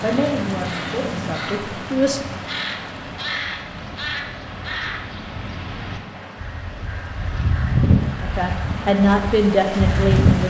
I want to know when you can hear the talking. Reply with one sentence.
You can hear the talking from 0.0 to 2.2 s and from 8.2 to 10.4 s.